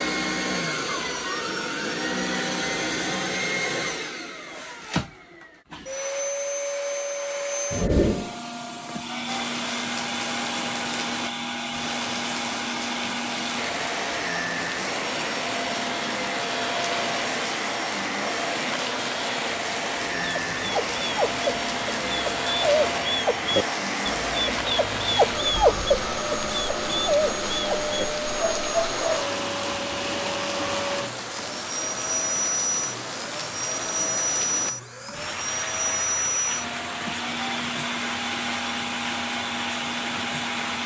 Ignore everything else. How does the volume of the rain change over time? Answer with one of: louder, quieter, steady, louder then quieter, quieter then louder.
steady.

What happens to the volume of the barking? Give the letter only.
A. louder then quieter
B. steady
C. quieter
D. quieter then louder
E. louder
A.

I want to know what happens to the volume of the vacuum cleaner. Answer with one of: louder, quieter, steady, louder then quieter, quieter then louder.
steady.